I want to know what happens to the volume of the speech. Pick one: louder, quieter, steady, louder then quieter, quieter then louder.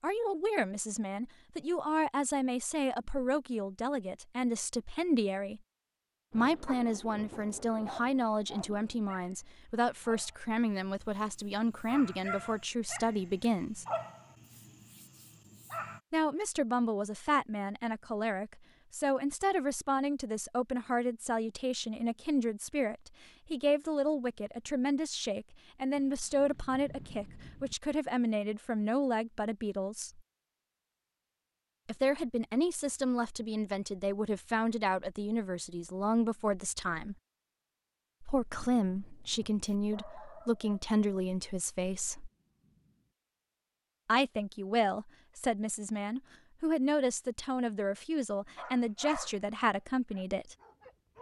steady.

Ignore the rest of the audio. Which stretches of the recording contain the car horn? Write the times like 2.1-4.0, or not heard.
not heard.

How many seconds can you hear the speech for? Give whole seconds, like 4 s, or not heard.
43 s.